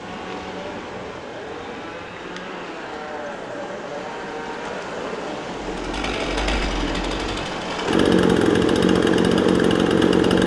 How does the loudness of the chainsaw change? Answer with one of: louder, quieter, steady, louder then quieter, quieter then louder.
louder.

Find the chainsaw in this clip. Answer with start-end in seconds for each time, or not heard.
0.0-10.4.